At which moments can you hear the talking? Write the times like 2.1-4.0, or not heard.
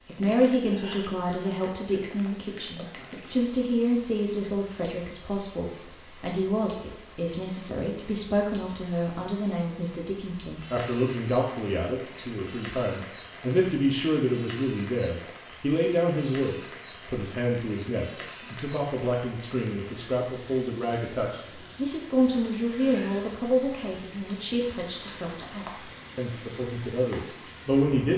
0.0-28.1.